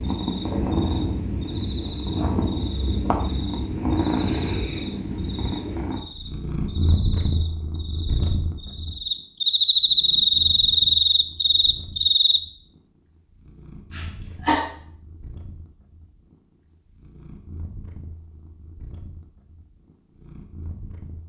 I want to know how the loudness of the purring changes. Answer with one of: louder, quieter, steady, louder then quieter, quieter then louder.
quieter.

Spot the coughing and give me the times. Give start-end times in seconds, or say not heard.
13.9-14.6.